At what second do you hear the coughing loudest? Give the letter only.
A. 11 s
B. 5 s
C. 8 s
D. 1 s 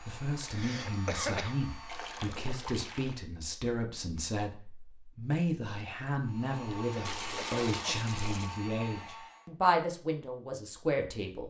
D.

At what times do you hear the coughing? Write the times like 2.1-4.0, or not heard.
0.4-1.6, 6.8-8.6.